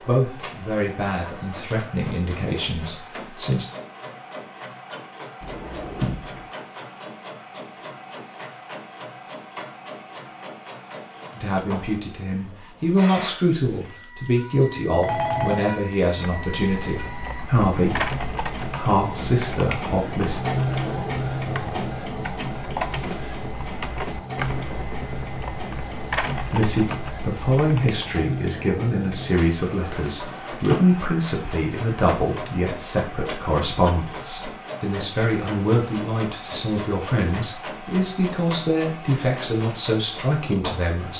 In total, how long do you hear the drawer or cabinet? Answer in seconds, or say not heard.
2 s.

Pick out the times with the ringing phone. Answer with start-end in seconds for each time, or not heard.
14.8-15.7.